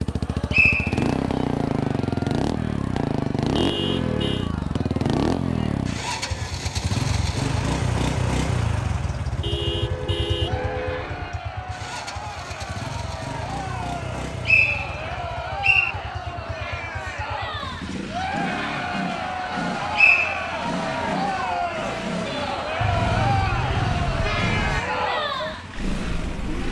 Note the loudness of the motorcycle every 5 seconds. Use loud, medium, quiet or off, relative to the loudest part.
loud, loud, medium, medium, medium, medium.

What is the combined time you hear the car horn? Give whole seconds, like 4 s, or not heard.
5 s.